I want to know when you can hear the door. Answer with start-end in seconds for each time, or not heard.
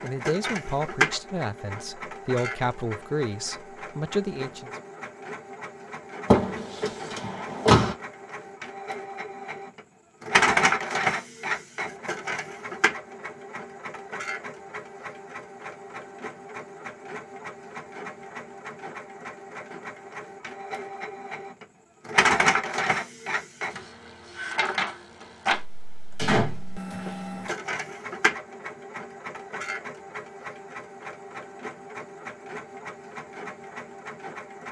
6.3-8.0, 26.1-27.5.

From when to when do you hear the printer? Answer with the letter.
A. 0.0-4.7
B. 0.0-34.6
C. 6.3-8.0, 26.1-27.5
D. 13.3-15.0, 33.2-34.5
B.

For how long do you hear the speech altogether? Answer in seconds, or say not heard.
5 s.